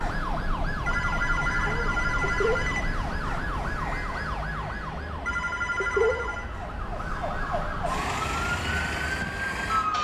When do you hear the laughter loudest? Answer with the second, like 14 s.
6 s.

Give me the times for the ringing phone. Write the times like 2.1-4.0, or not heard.
0.8-2.9, 5.2-6.5.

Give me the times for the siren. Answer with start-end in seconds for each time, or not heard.
0.0-9.9.